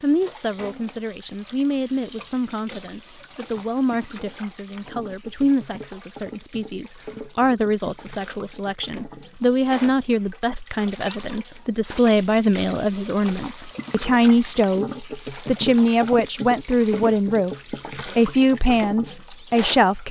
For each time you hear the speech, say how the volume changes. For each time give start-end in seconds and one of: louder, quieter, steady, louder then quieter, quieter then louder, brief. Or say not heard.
0.0-20.0 louder.